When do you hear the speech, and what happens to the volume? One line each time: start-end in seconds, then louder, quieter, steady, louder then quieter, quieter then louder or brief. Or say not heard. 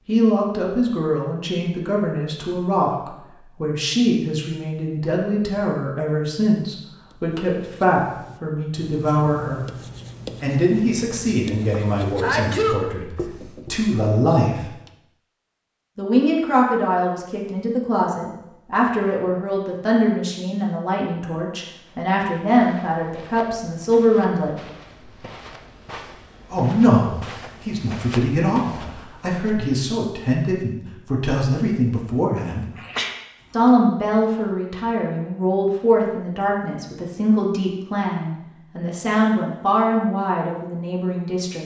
0.1-9.7 steady
10.4-14.7 quieter then louder
15.9-24.6 steady
26.5-32.6 steady
33.5-41.6 steady.